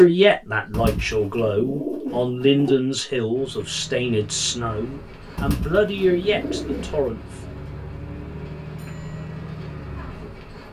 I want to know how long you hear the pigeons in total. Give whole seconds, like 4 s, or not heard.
4 s.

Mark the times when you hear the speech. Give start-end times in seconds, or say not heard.
0.0-7.4.